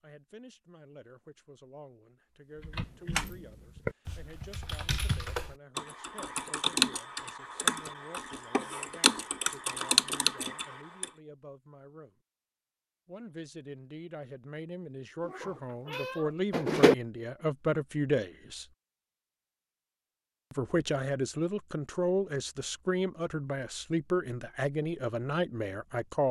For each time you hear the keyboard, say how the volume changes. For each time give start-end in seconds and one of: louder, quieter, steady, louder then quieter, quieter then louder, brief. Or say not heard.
2.5-11.1 louder.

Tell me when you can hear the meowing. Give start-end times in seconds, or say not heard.
15.2-16.9.